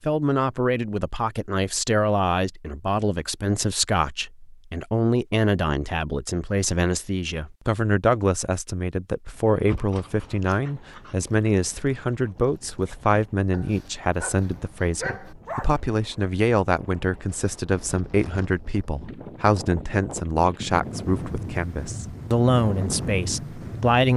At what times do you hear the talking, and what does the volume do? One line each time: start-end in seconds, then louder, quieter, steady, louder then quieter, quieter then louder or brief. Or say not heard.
0.0-24.1 steady.